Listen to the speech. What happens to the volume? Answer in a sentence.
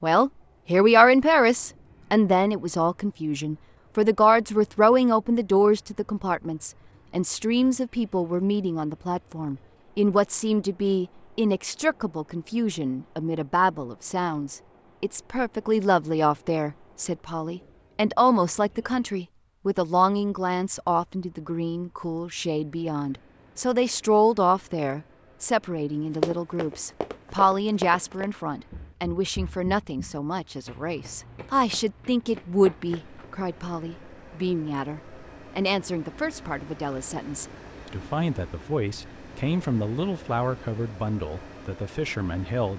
The loudness of the speech goes down.